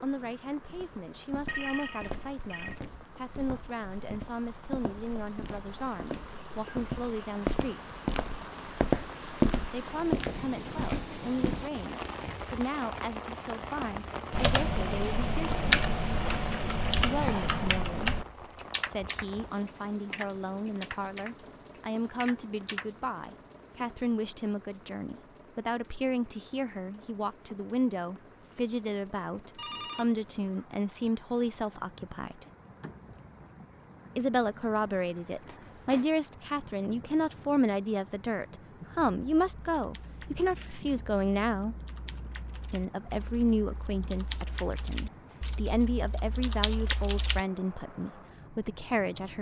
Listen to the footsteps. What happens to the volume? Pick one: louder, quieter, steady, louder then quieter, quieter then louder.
louder.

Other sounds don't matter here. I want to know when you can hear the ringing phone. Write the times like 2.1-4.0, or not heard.
1.4-2.8, 29.6-30.2, 35.5-36.1.